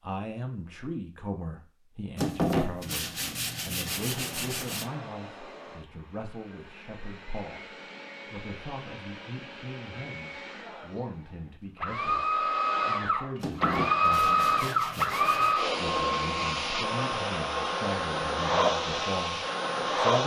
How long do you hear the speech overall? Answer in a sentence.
The speech can be heard for 20 seconds in total.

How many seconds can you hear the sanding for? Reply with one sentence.
You can hear the sanding for 5 seconds altogether.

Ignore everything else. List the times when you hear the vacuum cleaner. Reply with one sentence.
The vacuum cleaner can be heard from 3.8 to 20.2 s.